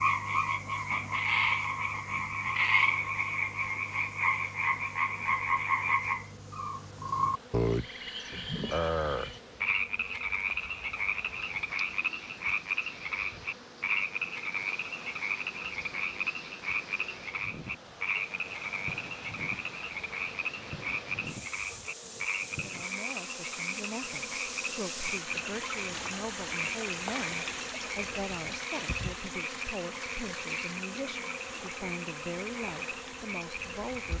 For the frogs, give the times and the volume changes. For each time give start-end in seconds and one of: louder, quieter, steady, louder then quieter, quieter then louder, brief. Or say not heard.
0.0-34.1 quieter.